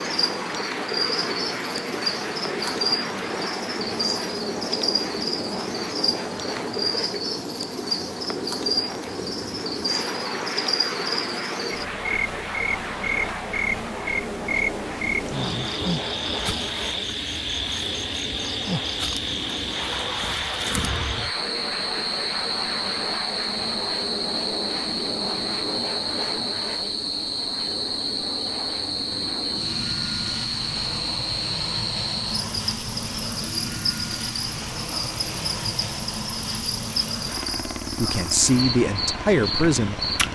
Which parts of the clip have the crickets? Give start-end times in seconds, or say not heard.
0.0-40.2.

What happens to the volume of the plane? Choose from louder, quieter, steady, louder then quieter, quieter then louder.
steady.